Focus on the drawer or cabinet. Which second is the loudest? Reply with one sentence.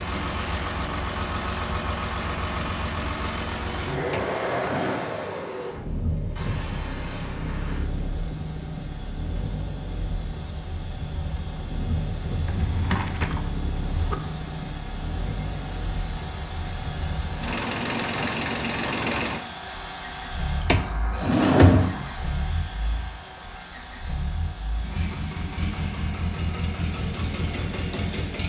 The volume of the drawer or cabinet peaks at 22 seconds.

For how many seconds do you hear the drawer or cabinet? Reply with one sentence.
The drawer or cabinet can be heard for 4 seconds in total.